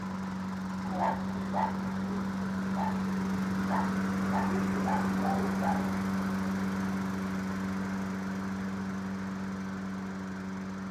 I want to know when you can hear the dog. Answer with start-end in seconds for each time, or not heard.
0.8-6.0.